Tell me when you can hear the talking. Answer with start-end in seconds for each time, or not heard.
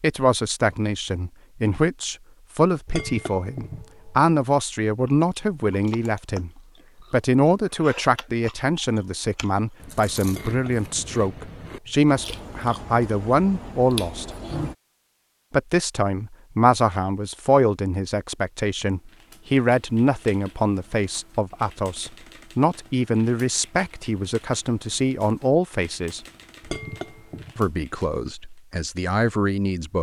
0.0-14.3, 15.5-26.2, 27.6-29.9.